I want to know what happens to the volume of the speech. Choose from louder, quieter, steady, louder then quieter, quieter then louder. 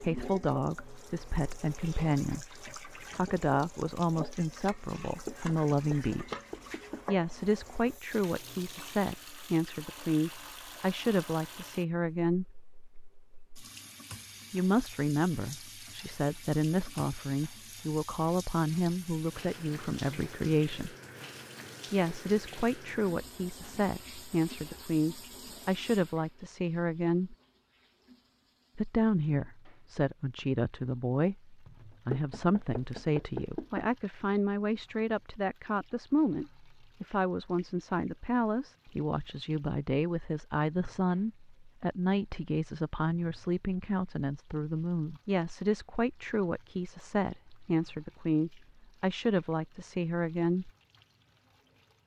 steady.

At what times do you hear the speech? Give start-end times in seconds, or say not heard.
0.0-6.3, 7.0-12.6, 14.5-20.9, 21.9-27.4, 28.8-50.7.